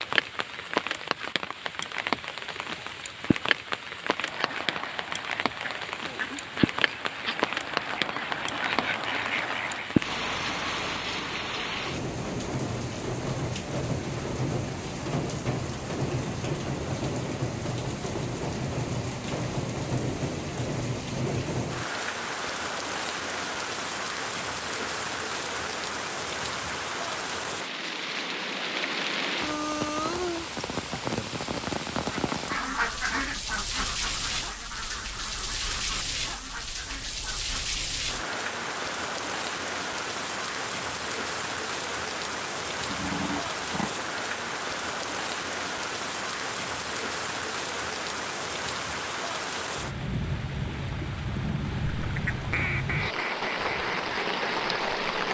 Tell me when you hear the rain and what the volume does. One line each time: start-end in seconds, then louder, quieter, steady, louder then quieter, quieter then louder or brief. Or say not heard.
0.0-55.2 steady.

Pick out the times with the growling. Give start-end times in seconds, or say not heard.
42.9-43.9.